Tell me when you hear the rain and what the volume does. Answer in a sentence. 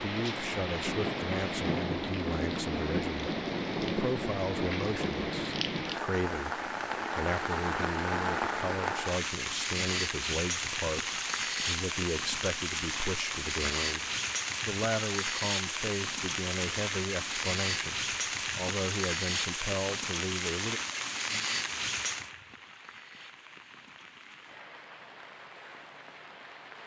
The rain can be heard from 0.0 to 26.8 s, getting quieter.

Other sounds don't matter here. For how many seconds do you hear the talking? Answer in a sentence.
You can hear the talking for 21 seconds altogether.